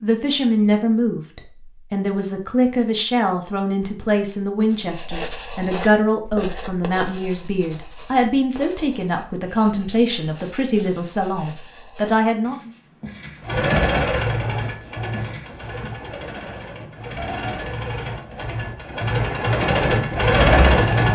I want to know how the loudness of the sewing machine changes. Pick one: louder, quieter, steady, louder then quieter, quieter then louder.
quieter then louder.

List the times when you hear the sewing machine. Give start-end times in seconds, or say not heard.
13.4-21.1.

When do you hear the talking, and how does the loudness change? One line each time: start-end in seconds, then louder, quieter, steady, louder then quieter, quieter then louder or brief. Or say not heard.
0.0-12.7 steady.